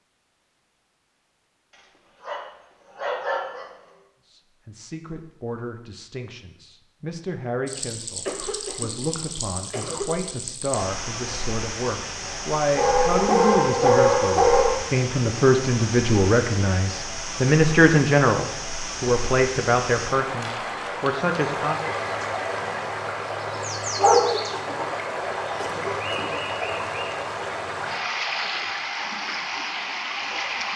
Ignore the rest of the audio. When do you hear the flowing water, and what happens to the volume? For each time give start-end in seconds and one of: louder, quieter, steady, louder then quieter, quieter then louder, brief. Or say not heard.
7.7-30.7 louder.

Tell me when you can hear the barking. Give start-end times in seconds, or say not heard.
1.8-3.7, 12.8-14.8, 23.9-24.9.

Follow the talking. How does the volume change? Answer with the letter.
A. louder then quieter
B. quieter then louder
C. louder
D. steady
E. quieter
C.